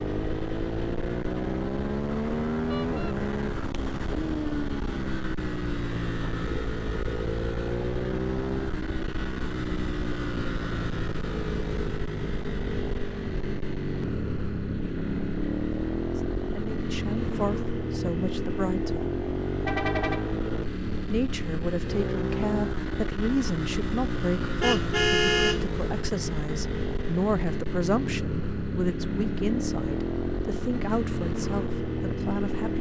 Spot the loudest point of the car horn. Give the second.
25 s.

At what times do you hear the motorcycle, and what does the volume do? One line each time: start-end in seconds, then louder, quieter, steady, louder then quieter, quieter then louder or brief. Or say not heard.
0.0-32.7 steady.